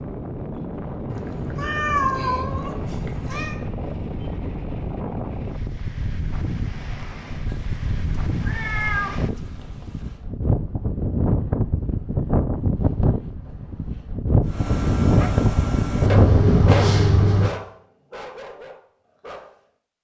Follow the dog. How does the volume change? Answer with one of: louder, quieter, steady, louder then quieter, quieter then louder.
quieter.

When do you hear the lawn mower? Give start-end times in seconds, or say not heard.
not heard.